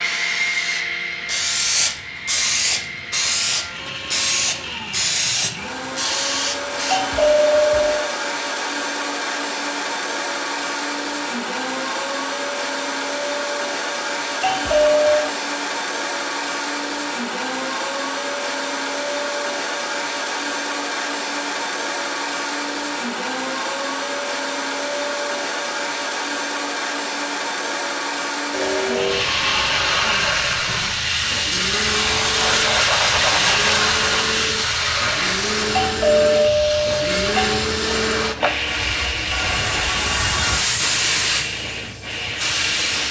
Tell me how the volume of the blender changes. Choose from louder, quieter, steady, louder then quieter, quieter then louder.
steady.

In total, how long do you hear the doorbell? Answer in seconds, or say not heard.
4 s.